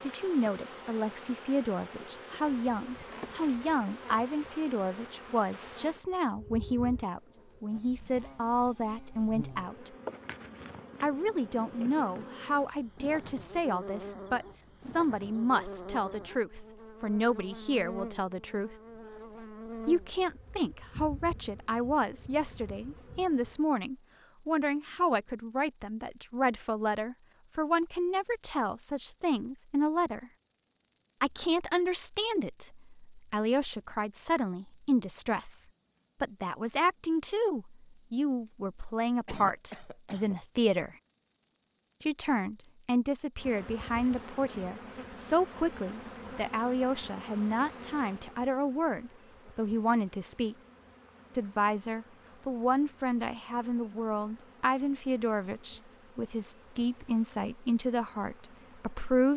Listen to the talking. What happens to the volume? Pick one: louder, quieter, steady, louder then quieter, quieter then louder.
steady.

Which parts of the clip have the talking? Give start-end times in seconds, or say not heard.
0.0-9.9, 11.0-18.8, 19.9-30.3, 31.2-41.0, 42.0-50.5, 51.3-59.3.